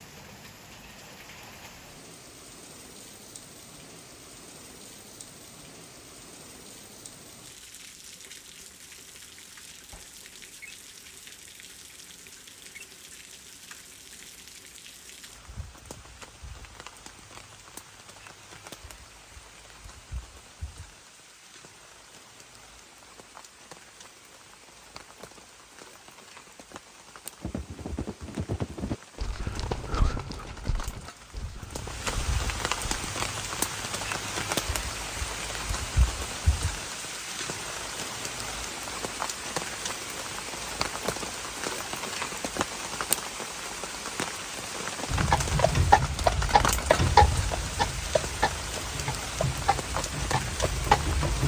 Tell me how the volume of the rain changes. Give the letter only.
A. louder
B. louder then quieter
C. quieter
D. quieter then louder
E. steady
A.